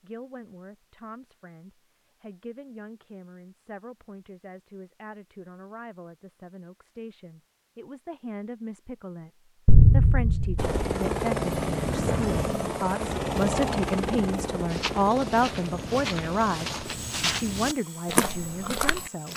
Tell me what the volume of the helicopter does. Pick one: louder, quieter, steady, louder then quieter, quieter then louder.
quieter.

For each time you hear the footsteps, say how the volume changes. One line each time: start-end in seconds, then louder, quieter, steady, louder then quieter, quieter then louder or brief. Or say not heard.
14.7-19.3 louder.